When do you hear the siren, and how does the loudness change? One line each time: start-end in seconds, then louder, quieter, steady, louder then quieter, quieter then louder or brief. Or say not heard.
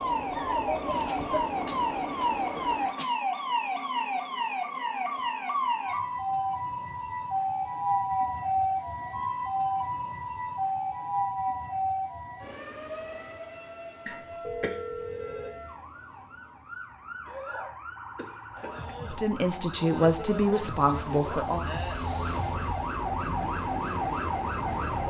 0.0-25.0 quieter then louder.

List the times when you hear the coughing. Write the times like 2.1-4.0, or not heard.
1.1-3.0, 14.1-14.8, 16.8-18.9.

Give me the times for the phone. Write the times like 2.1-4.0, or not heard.
14.4-15.6.